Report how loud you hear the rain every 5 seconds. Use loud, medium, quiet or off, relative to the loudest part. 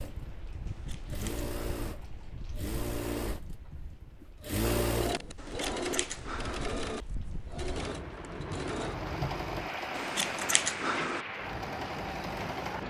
medium, loud, loud.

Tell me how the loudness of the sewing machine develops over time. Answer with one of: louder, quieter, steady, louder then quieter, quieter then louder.
louder then quieter.